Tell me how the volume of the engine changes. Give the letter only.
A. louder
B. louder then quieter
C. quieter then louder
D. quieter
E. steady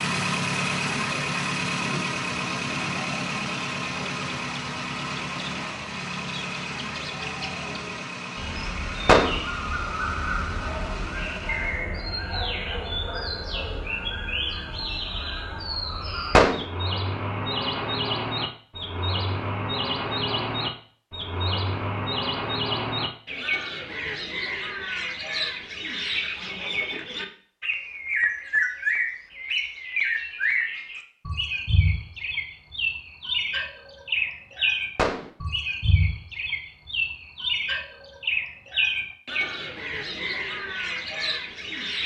D.